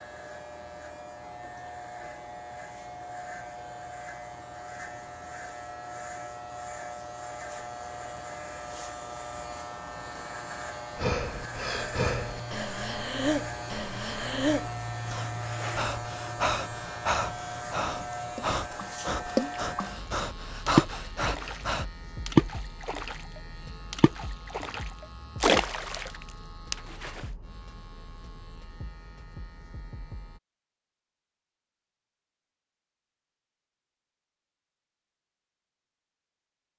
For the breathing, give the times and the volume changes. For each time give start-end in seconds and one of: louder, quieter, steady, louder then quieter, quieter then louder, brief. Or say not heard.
10.9-21.9 steady.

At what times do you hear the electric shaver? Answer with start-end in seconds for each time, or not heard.
0.0-30.4.